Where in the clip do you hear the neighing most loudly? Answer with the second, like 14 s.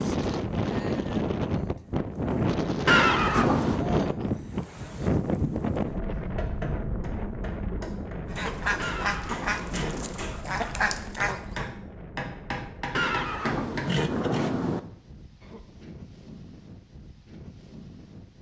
3 s.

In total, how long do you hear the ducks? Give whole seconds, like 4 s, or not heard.
3 s.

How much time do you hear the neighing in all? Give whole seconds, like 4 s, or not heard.
4 s.